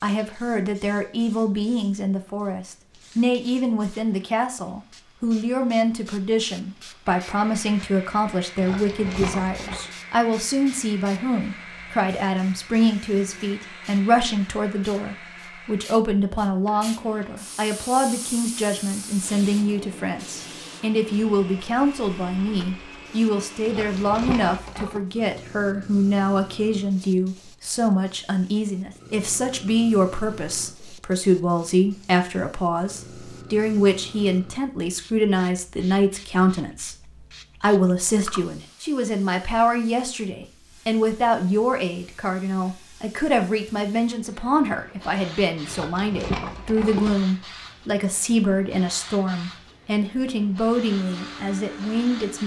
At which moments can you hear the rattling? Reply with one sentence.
The rattling can be heard from 8.6 to 9.9 s, from 23.6 to 25.0 s and from 45.6 to 47.2 s.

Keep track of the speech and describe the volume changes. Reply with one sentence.
The volume of the speech stays about the same.